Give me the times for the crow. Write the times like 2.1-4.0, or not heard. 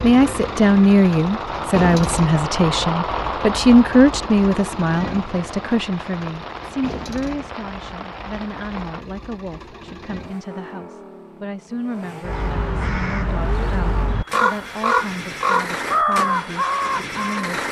12.2-17.5.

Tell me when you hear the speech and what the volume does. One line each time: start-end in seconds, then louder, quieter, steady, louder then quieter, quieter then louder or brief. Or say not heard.
0.0-17.6 quieter.